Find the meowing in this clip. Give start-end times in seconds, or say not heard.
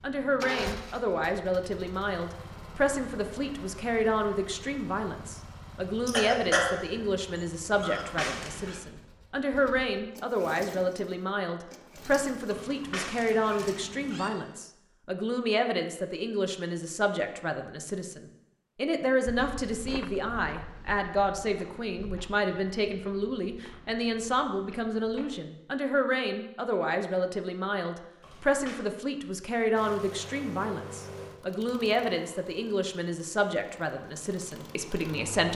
7.8-8.8, 12.5-14.3, 28.2-28.8.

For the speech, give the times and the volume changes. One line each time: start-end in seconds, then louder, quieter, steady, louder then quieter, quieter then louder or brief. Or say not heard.
0.0-35.4 steady.